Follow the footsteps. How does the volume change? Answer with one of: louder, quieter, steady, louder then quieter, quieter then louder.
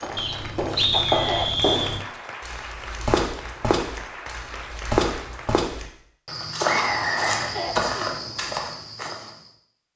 steady.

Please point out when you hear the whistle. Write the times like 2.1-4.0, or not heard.
0.1-1.9, 6.6-7.5.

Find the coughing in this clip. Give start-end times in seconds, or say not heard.
0.9-1.7, 7.2-8.0.